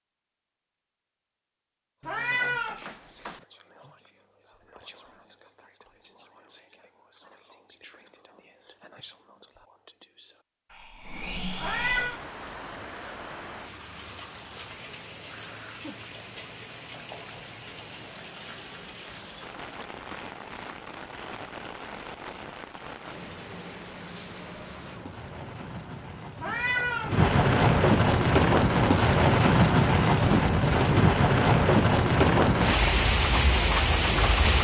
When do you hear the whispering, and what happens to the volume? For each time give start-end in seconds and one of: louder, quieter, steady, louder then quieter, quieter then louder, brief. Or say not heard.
1.9-12.2 louder.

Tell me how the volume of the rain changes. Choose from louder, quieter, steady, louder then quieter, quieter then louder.
louder.